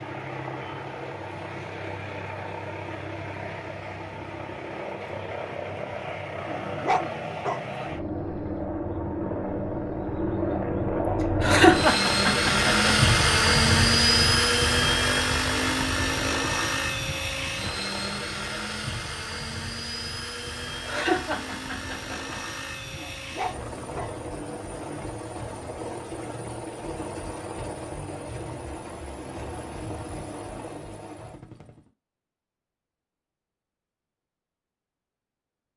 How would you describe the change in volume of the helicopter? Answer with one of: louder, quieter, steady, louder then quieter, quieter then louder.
louder then quieter.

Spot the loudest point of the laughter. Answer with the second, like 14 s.
12 s.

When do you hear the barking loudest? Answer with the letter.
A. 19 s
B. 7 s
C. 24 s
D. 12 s
B.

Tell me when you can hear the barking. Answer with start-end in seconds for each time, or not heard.
6.3-7.6, 22.9-24.1.